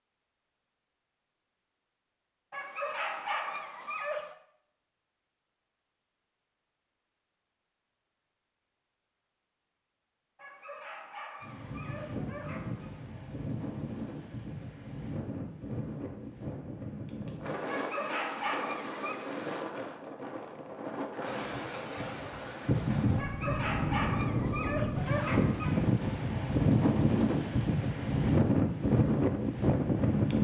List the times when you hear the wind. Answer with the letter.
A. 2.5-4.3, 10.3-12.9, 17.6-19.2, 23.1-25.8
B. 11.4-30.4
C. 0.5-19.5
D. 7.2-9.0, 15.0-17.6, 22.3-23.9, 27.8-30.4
B.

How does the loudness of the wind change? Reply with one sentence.
The volume of the wind goes up.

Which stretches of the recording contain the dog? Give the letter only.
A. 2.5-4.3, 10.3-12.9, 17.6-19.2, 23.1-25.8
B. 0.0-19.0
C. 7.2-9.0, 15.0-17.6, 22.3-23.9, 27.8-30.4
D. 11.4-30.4
A.